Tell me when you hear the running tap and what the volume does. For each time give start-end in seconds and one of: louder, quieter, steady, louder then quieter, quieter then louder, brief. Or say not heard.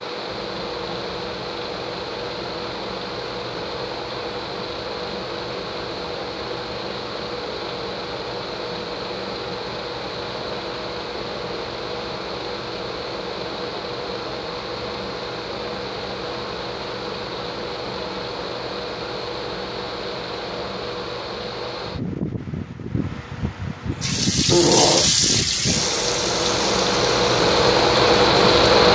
24.0-28.9 quieter.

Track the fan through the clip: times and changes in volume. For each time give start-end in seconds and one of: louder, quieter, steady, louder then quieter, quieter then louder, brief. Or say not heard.
0.0-28.9 louder.